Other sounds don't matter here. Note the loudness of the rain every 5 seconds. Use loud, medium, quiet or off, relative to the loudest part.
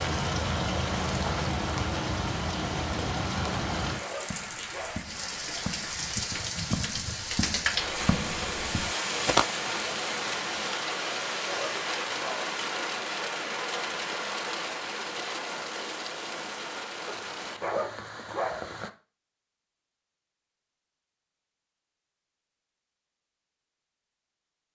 loud, loud, loud, medium, off.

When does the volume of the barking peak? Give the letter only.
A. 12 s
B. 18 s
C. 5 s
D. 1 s
B.